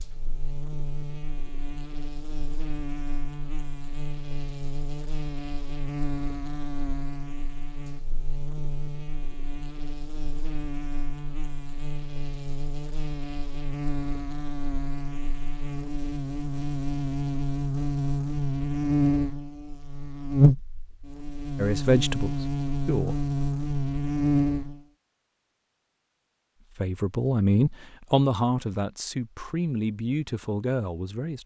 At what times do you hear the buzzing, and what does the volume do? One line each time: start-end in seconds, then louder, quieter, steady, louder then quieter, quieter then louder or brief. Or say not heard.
0.0-24.8 louder.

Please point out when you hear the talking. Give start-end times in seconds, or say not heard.
21.6-23.1, 26.7-31.4.